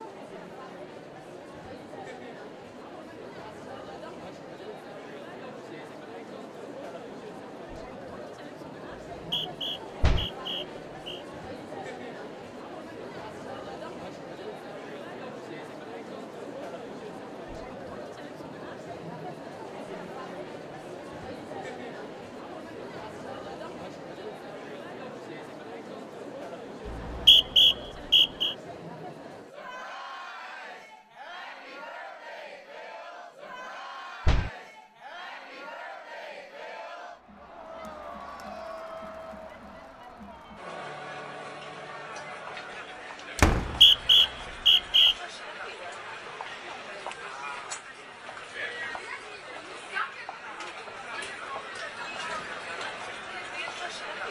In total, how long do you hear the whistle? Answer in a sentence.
You can hear the whistle for 5 seconds altogether.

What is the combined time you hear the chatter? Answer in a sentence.
You can hear the chatter for 54 seconds altogether.